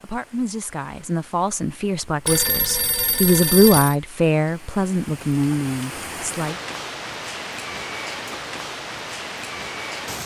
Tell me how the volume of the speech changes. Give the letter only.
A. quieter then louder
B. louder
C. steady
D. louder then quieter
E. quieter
D.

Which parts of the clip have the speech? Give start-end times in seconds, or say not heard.
0.0-6.6.